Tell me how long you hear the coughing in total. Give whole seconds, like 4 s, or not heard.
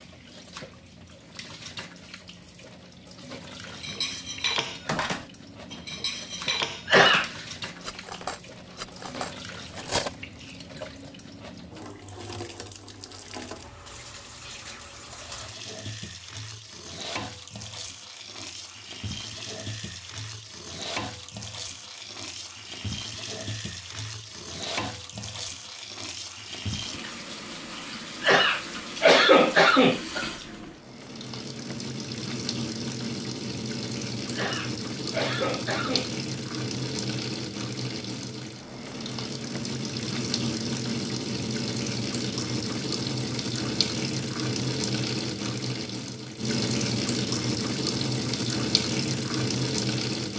4 s.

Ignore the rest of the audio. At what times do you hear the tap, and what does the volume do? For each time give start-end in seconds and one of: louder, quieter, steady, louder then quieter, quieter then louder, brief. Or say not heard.
0.0-50.3 louder.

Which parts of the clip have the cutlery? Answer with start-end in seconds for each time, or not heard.
3.6-10.2.